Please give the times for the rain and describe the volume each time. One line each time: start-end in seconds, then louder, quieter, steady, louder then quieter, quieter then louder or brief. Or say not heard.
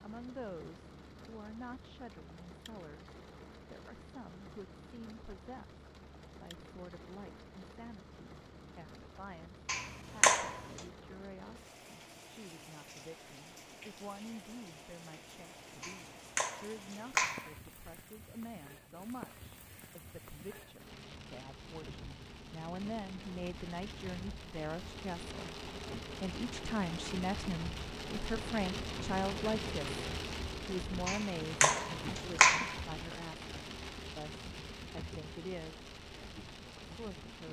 0.0-37.4 louder.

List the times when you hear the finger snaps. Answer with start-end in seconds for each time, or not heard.
9.7-10.8, 15.8-17.5, 31.1-32.8.